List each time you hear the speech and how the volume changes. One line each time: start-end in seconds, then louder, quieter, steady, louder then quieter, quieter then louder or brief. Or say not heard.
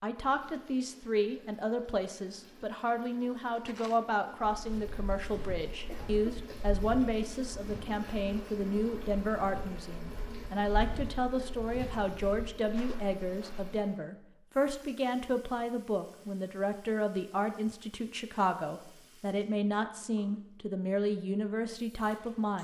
0.0-22.5 steady.